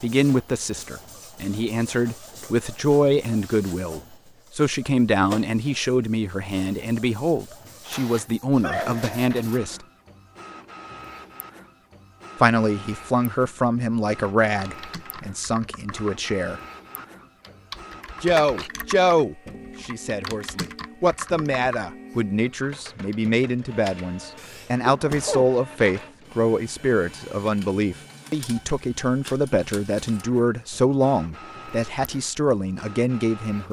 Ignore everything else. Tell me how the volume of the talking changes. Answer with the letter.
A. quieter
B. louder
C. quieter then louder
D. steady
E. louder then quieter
D.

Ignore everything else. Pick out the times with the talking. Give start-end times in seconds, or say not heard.
0.0-9.8, 12.3-16.6, 18.2-33.6.